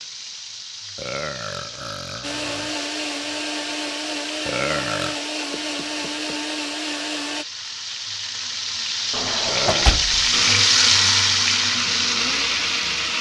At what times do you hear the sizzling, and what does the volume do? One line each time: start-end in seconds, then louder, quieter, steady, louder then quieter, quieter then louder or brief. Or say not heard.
0.0-13.1 louder.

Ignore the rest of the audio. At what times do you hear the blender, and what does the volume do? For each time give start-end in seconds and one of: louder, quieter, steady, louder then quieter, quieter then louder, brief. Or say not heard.
2.2-7.5 steady
10.3-13.1 brief.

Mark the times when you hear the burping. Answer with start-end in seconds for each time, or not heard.
0.9-2.8, 4.5-5.2, 9.4-10.1.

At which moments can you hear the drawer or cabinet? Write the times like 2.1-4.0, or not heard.
9.1-10.4.